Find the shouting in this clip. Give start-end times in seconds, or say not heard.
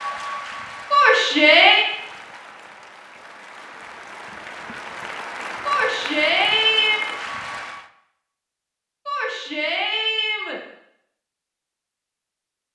0.9-1.9, 5.7-7.0, 9.1-10.6.